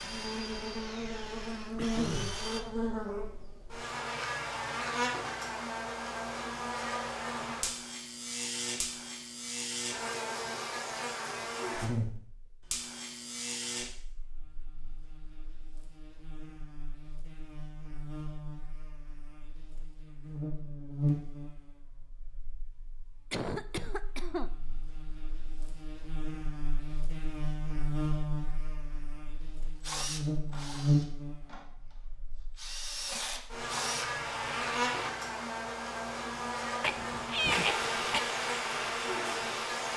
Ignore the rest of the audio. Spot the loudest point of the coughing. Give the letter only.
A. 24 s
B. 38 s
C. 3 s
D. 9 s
B.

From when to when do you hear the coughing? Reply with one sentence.
You can hear the coughing from 1.8 to 2.5 s, from 23.3 to 24.5 s and from 36.8 to 38.2 s.